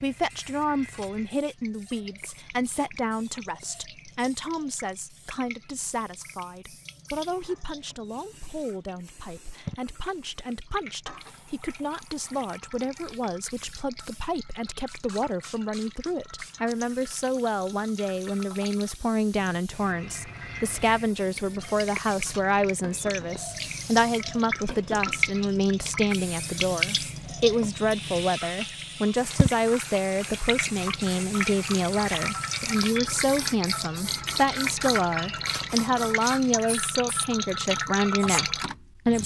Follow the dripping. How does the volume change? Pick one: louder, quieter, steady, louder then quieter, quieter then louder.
louder.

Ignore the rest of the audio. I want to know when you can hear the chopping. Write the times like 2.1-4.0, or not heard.
not heard.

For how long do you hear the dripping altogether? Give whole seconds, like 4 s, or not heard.
39 s.